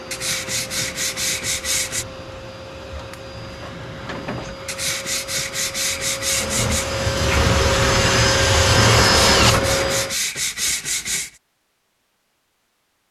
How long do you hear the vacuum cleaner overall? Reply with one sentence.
The vacuum cleaner can be heard for 10 seconds in total.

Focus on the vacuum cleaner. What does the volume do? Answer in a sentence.
The loudness of the vacuum cleaner goes up.